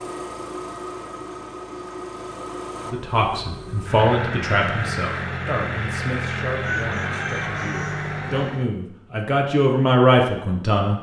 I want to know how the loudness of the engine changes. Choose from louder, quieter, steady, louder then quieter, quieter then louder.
louder.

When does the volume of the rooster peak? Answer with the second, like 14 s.
7 s.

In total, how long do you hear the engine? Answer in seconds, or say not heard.
9 s.